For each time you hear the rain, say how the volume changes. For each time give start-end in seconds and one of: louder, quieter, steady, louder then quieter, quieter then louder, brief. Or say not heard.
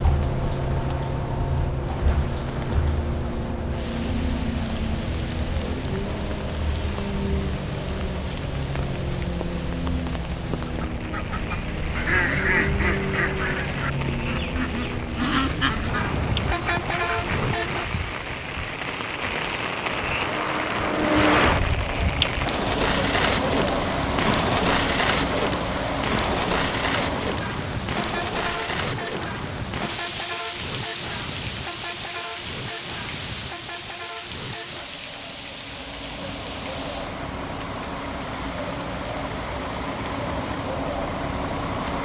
0.0-41.9 louder then quieter.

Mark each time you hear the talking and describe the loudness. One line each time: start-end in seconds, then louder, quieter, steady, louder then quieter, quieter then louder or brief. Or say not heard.
not heard.